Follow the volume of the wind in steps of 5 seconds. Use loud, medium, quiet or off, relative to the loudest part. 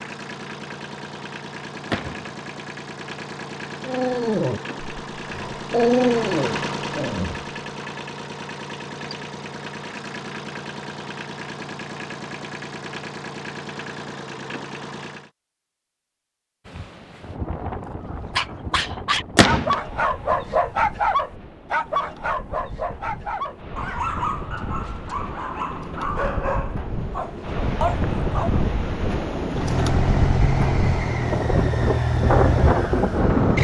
off, off, off, quiet, quiet, medium, loud.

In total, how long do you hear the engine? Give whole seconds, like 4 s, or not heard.
19 s.